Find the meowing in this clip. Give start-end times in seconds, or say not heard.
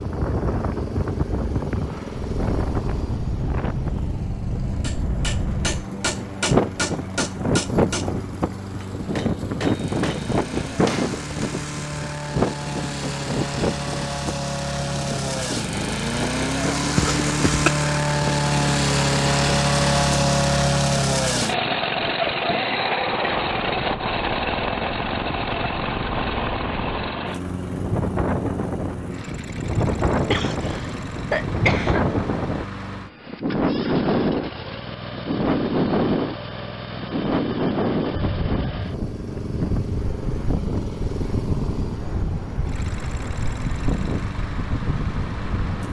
not heard.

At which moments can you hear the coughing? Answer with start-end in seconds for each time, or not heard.
16.9-17.7, 30.3-32.0.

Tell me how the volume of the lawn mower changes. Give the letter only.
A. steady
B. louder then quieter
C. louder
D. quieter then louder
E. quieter
B.